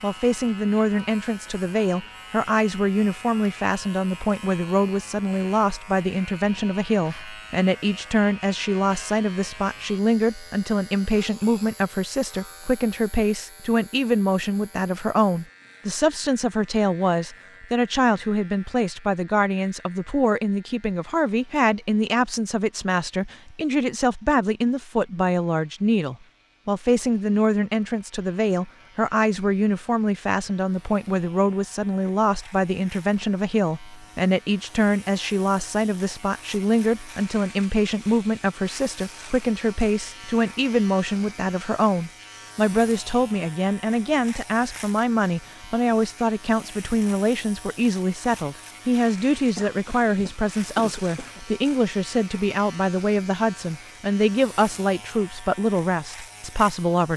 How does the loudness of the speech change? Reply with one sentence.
The volume of the speech stays about the same.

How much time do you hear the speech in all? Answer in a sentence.
The speech can be heard for 57 seconds in total.